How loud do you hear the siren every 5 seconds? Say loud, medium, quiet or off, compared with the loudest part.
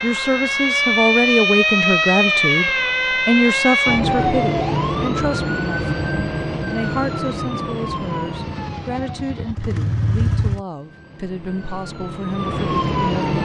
loud, medium, medium.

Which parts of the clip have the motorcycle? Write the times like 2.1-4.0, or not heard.
8.3-10.7.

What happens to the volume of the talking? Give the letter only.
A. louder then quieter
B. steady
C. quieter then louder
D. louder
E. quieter
E.